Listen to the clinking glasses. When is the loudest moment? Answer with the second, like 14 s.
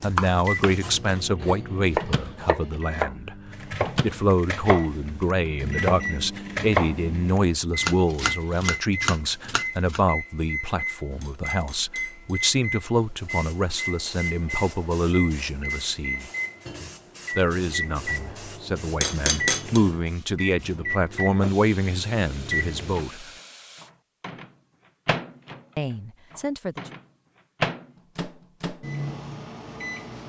19 s.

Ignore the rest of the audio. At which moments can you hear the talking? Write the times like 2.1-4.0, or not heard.
0.0-3.4, 4.0-16.3, 17.4-23.3, 25.8-26.8.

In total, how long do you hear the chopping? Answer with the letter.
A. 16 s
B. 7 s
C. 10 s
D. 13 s
C.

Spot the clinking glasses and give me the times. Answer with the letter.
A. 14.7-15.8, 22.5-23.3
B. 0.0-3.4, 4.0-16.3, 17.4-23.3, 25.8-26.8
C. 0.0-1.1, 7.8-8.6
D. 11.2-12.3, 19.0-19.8
D.